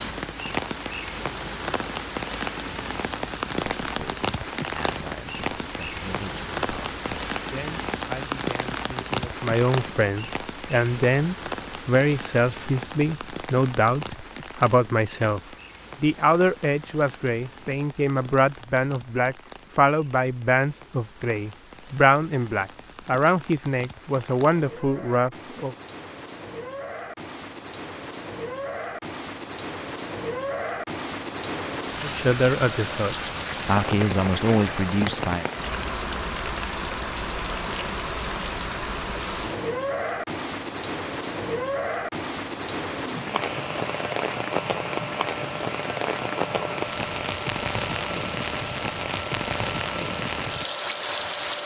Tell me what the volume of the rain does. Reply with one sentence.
The loudness of the rain goes down, then up.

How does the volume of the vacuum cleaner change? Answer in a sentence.
The loudness of the vacuum cleaner stays about the same.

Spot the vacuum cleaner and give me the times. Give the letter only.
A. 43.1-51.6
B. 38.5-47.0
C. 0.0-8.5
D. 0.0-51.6
A.